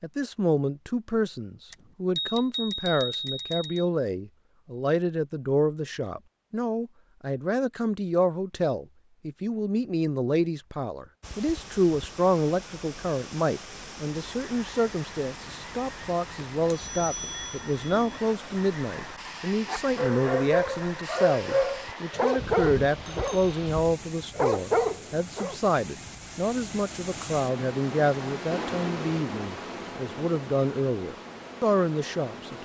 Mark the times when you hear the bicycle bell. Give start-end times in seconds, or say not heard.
1.7-3.9, 16.7-18.2, 22.4-23.9.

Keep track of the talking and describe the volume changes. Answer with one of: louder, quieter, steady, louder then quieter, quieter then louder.
steady.